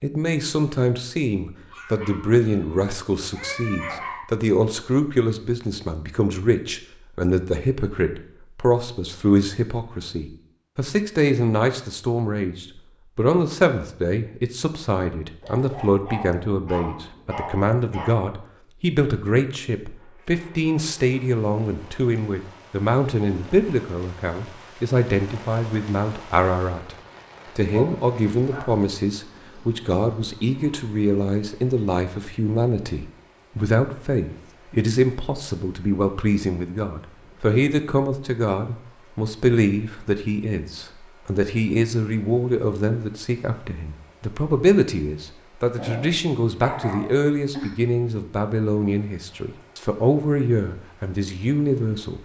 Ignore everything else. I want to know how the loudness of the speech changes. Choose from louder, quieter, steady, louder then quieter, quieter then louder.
steady.